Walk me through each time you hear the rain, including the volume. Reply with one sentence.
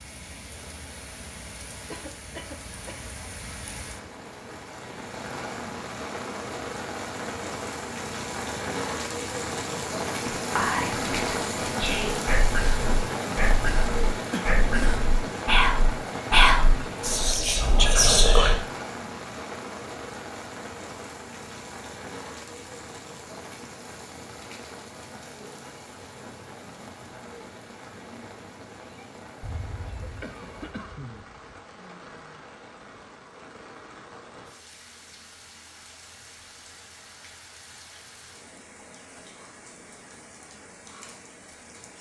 The rain can be heard from 0.0 to 41.9 s, getting louder then quieter.